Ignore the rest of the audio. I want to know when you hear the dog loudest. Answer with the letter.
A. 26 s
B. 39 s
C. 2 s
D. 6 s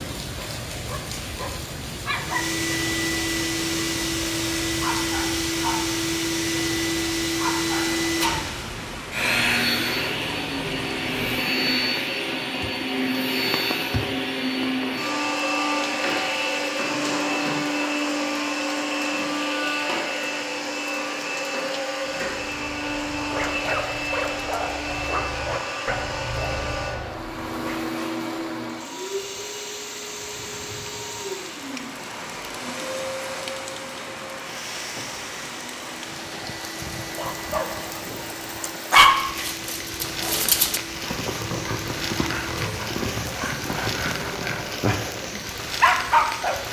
B.